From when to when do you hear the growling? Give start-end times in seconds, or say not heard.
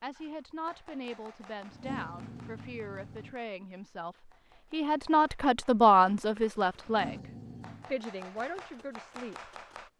1.7-3.4, 6.8-8.0.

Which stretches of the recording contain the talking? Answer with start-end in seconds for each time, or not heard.
0.0-7.2, 7.9-9.9.